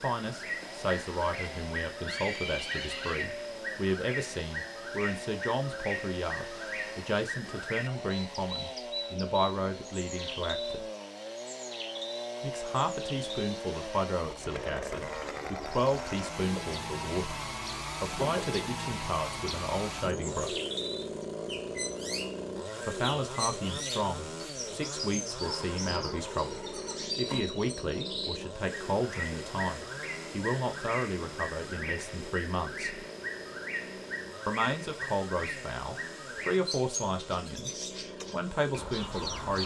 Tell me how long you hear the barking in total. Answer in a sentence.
The barking can't be heard in this clip.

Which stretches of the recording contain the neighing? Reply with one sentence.
The neighing can be heard from 2.0 to 3.2 s and from 25.4 to 27.4 s.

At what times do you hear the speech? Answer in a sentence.
You can hear the speech from 0.0 to 10.8 s, from 12.4 to 17.4 s, from 18.0 to 20.6 s, from 22.9 to 33.0 s and from 34.5 to 39.6 s.